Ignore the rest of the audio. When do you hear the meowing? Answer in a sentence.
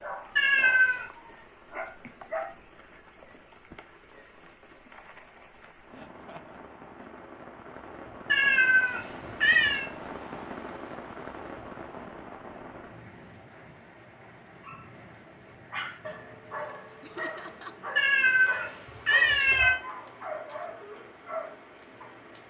You can hear the meowing from 0.3 to 1.1 s, from 8.2 to 9.8 s and from 17.9 to 19.8 s.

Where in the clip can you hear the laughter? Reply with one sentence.
You can hear the laughter from 5.9 to 7.1 s and from 17.0 to 17.8 s.